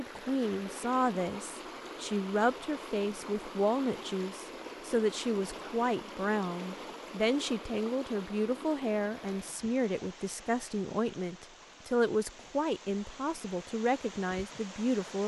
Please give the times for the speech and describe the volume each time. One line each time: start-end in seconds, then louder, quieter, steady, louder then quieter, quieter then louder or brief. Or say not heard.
0.0-15.2 steady.